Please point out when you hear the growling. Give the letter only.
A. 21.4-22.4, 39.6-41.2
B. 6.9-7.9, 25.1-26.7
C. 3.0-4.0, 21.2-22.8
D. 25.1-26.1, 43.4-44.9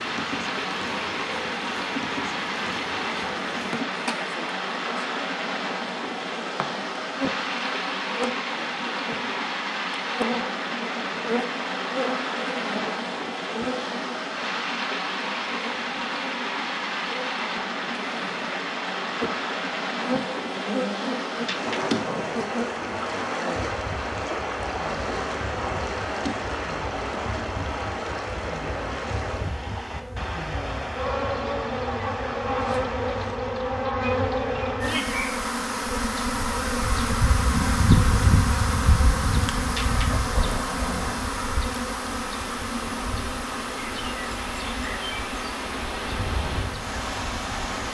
A.